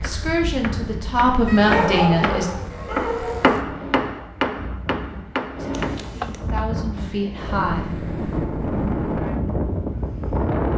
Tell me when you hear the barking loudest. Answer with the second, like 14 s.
2 s.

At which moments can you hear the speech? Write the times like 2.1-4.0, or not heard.
0.0-2.5, 5.5-8.0.